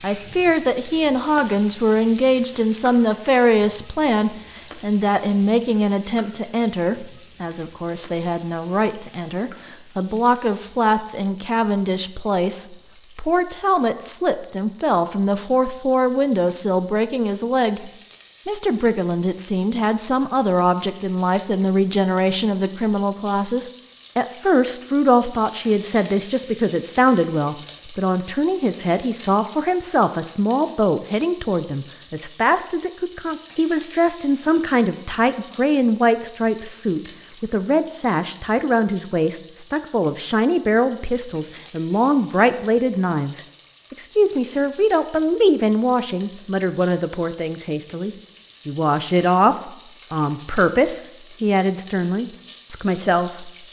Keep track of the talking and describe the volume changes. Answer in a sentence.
The loudness of the talking stays about the same.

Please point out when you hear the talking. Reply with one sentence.
The talking can be heard from 0.0 to 53.5 s.